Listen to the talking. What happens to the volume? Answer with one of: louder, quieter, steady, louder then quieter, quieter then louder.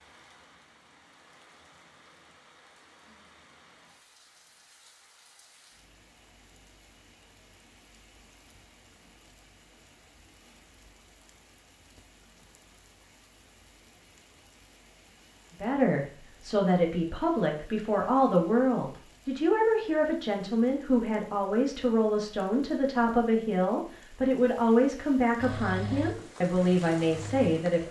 steady.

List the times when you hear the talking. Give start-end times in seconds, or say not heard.
15.6-27.8.